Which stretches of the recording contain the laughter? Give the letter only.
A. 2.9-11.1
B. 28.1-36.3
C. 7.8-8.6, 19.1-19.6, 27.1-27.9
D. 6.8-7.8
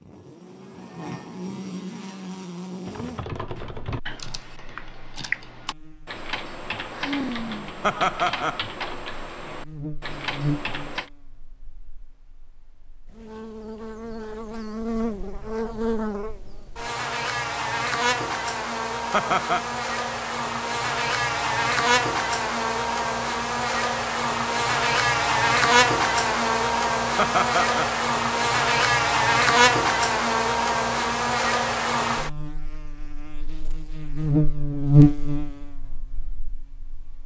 C.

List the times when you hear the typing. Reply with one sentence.
You can hear the typing from 2.9 to 11.1 s.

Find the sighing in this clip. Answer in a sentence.
The sighing can be heard from 6.8 to 7.8 s.